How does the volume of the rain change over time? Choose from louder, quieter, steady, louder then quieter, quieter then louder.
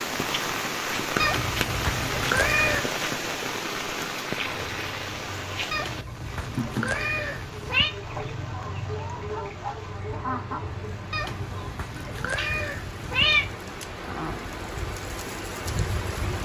quieter then louder.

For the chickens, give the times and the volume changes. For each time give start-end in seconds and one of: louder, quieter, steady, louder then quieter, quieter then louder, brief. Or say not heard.
4.3-12.5 louder then quieter.